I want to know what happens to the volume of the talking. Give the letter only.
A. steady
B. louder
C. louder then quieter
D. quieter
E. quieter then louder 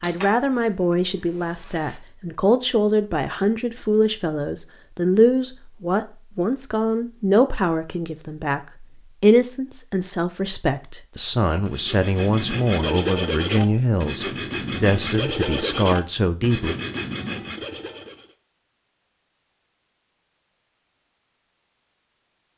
A.